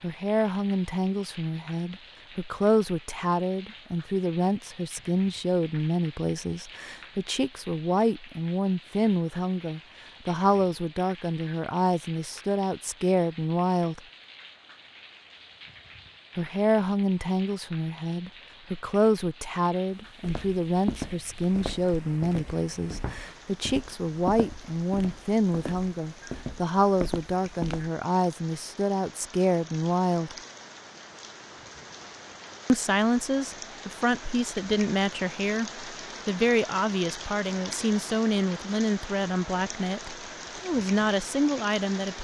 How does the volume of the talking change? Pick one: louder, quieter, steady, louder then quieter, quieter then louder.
steady.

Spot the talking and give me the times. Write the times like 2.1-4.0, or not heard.
0.0-14.0, 16.4-30.4, 32.6-42.2.